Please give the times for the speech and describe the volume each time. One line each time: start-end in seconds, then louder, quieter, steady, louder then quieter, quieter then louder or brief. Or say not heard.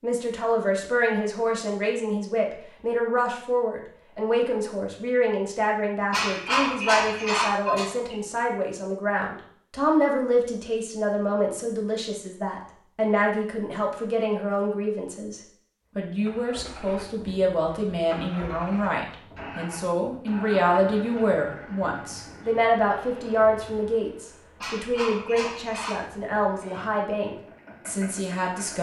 0.0-28.7 steady.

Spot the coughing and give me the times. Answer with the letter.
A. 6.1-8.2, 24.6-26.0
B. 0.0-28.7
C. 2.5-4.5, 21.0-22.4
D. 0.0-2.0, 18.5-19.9
A.